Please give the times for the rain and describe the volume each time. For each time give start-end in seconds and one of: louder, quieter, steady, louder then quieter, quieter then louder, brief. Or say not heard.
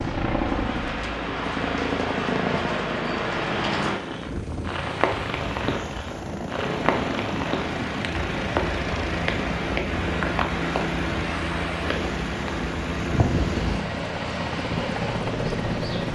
0.0-16.1 steady.